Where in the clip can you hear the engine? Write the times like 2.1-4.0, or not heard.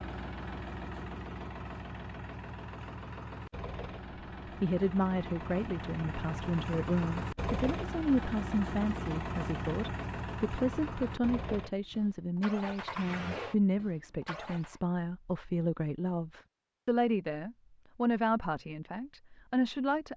0.0-14.8.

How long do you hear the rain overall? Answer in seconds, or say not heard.
not heard.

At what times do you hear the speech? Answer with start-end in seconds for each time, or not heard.
4.6-20.1.